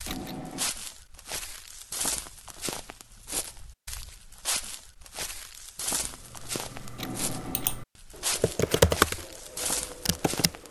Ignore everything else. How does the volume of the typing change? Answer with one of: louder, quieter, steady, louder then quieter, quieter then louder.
louder then quieter.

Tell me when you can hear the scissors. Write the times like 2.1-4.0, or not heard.
0.1-0.7, 7.0-7.8.